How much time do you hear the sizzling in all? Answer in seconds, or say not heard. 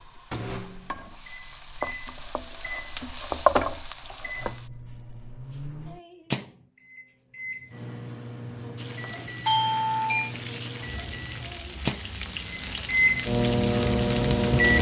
11 s.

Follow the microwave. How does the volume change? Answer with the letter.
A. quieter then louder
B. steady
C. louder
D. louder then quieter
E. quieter
C.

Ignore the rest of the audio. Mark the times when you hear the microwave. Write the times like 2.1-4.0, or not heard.
0.0-14.7.